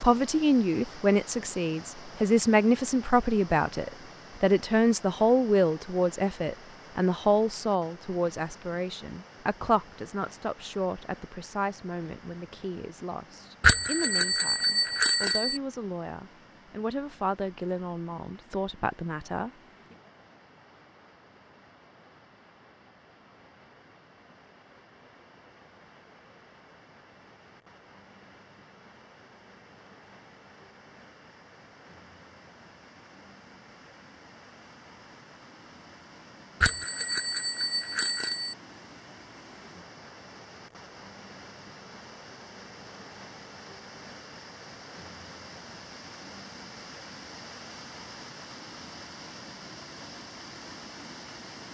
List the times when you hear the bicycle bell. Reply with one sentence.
The bicycle bell can be heard from 13.6 to 15.6 s and from 36.6 to 38.5 s.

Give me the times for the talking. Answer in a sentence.
You can hear the talking from 0.0 to 19.5 s.